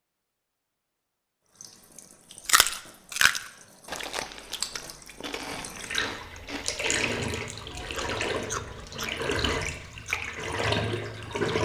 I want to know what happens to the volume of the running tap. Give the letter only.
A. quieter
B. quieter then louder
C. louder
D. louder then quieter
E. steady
C.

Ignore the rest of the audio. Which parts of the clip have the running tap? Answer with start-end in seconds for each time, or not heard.
1.5-11.6.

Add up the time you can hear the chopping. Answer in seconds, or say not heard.
not heard.